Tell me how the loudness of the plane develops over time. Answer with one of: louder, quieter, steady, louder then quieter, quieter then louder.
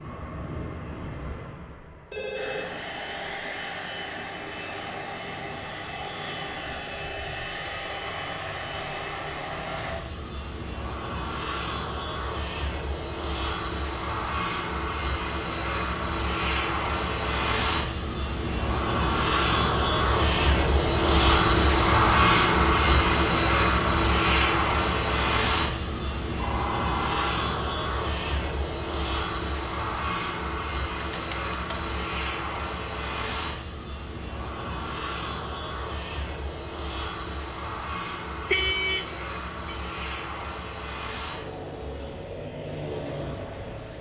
louder then quieter.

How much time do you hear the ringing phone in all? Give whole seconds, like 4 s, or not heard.
3 s.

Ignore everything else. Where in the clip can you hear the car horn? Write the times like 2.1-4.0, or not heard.
38.5-39.8.